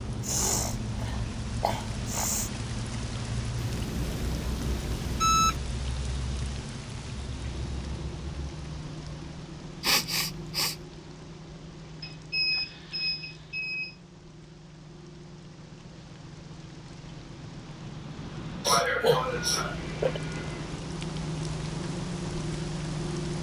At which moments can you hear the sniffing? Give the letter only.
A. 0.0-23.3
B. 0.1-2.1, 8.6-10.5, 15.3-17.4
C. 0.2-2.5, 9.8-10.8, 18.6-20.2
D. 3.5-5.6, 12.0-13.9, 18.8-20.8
C.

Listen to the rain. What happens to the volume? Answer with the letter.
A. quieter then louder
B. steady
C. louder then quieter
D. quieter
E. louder
A.